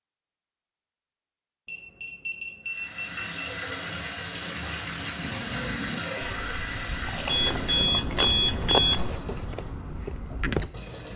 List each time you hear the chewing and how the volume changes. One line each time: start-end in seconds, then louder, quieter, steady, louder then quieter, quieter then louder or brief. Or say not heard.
5.2-10.7 louder then quieter.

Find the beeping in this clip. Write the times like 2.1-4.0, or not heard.
1.6-3.6, 7.2-9.2.